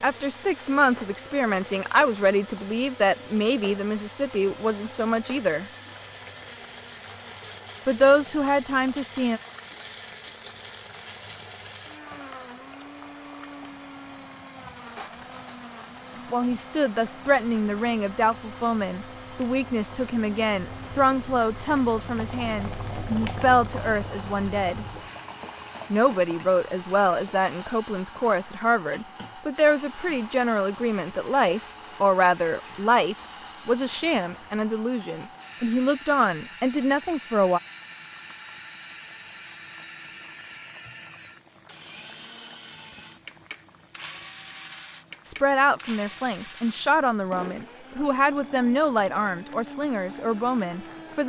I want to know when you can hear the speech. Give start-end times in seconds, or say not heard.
0.0-5.7, 7.8-9.4, 16.1-24.9, 25.9-37.6, 45.2-51.2.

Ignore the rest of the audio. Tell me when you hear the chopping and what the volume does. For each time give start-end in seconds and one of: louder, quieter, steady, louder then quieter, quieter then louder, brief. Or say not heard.
not heard.